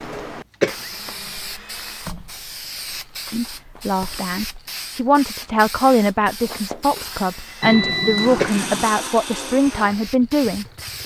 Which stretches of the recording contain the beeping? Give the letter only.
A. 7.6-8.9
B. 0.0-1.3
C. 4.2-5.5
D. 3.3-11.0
A.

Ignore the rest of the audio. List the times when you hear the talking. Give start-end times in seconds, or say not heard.
3.3-11.0.